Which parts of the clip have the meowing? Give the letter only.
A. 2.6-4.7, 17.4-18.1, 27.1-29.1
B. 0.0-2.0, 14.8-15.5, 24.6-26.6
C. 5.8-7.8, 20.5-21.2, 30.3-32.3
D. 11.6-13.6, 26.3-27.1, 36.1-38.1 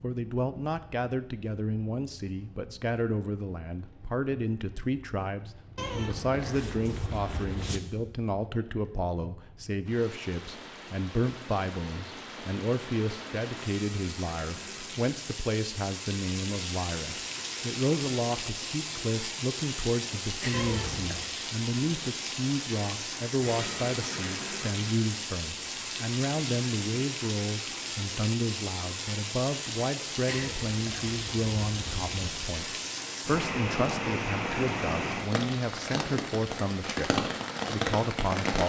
C.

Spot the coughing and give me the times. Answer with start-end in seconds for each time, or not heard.
not heard.